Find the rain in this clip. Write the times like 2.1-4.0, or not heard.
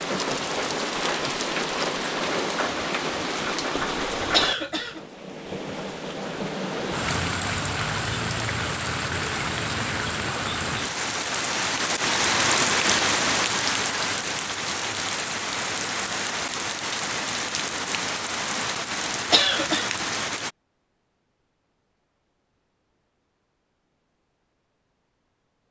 0.0-20.5.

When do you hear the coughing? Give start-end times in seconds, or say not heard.
4.3-5.0, 19.3-19.9.